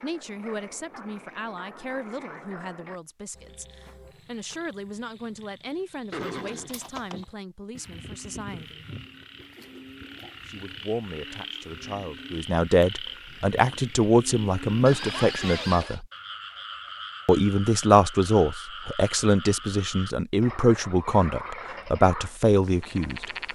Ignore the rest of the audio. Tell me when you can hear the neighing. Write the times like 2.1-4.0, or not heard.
6.1-7.2, 14.8-16.0.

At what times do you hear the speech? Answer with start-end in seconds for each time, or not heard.
0.0-8.8, 10.4-16.1, 17.2-23.3.